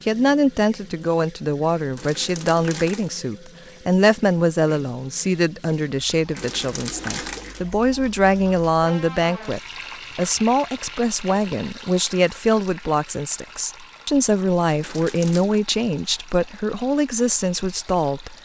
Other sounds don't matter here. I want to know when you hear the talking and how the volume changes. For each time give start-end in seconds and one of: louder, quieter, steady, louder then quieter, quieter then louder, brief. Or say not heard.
0.0-18.4 steady.